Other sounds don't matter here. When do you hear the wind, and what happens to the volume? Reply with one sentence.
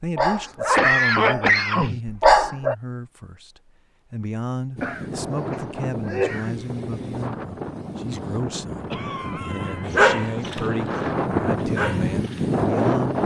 The wind can be heard from 4.8 to 13.2 s, getting louder.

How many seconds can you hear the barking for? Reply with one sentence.
You can hear the barking for 6 seconds altogether.